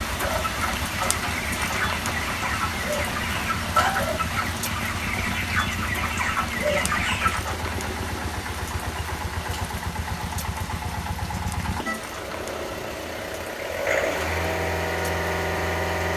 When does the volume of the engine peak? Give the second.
14 s.